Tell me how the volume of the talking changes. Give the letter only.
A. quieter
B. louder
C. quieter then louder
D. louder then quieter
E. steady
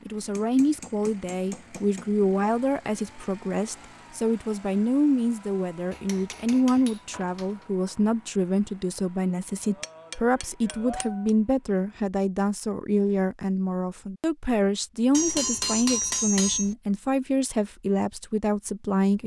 E.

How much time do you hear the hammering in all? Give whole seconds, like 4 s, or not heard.
7 s.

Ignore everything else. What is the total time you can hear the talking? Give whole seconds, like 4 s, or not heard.
19 s.